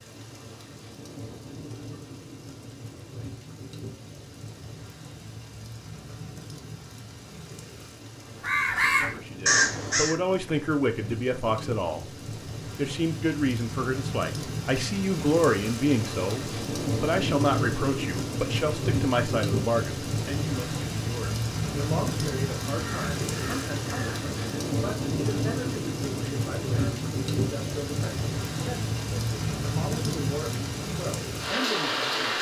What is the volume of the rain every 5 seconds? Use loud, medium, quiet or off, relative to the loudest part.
quiet, quiet, medium, loud, loud, loud, loud.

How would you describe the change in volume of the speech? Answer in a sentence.
The loudness of the speech goes down.